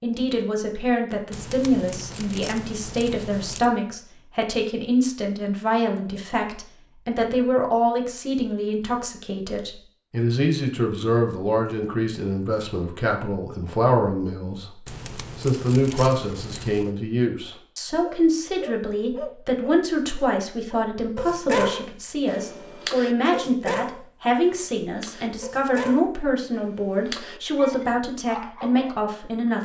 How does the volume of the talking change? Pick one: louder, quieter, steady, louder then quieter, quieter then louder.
steady.